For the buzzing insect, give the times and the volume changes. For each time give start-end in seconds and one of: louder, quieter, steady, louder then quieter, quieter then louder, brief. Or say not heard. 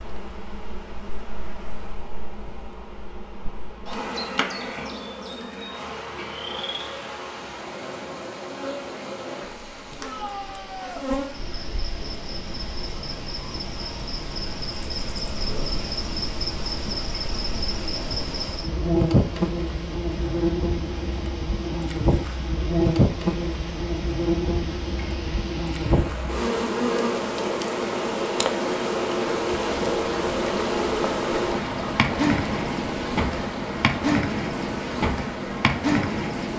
0.0-36.5 louder.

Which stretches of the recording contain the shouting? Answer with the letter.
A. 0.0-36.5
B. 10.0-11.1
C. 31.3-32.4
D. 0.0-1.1
B.